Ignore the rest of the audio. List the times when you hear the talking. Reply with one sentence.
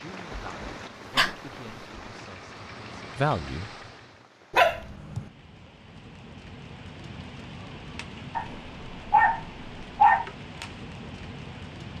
You can hear the talking from 0.0 to 3.7 s.